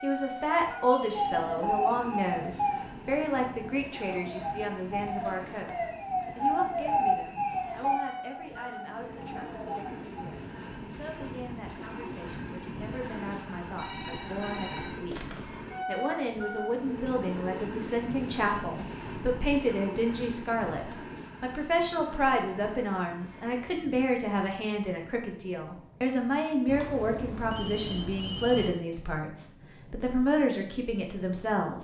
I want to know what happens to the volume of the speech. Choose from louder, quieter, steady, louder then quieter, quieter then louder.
quieter then louder.